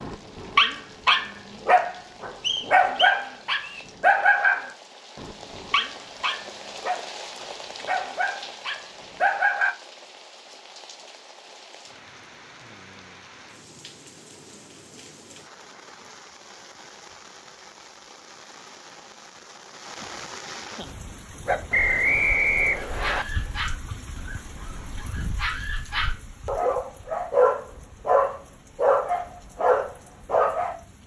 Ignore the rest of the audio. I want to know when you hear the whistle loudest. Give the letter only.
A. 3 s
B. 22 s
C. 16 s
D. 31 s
B.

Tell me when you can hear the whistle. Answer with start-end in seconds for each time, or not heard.
2.4-3.9, 21.7-23.2.